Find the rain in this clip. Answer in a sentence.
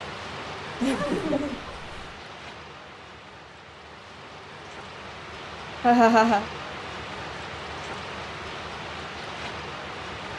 The rain can be heard from 0.0 to 10.3 s.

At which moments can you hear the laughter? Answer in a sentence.
The laughter can be heard from 0.8 to 1.9 s and from 5.8 to 6.5 s.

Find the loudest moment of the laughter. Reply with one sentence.
The loudest moment of the laughter is at 6 seconds.